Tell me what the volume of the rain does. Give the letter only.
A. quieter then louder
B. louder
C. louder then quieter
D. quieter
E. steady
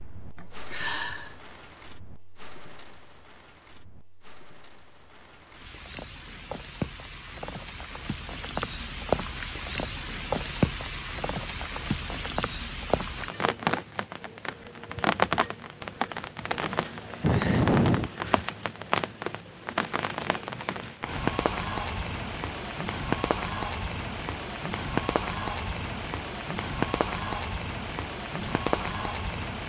B.